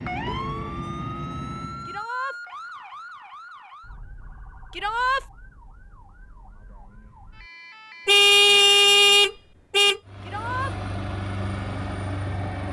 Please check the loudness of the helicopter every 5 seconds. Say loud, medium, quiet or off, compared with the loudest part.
loud, off, loud.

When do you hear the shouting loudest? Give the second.
5 s.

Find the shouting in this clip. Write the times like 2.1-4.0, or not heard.
1.9-2.4, 4.7-5.2, 10.2-10.8.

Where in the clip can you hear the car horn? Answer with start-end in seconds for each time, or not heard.
0.1-0.8, 8.1-10.0.